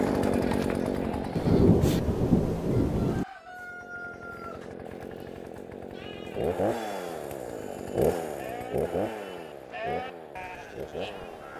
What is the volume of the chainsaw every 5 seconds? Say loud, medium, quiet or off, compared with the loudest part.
loud, loud, medium.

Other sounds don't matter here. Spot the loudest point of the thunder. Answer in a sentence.
The volume of the thunder peaks at 2 seconds.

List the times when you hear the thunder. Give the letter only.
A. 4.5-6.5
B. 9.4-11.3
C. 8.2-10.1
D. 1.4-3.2
D.